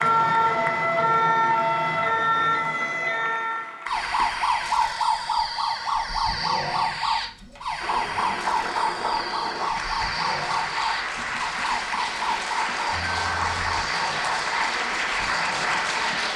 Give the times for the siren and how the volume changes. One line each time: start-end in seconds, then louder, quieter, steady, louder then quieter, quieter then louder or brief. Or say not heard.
0.0-16.2 quieter.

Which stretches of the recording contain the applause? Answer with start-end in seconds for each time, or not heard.
0.0-4.5, 7.8-16.3.